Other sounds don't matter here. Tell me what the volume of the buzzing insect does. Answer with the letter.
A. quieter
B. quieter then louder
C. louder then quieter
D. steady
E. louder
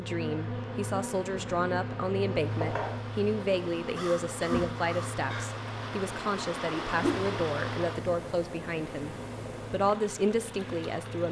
A.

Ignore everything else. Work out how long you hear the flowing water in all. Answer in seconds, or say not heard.
9 s.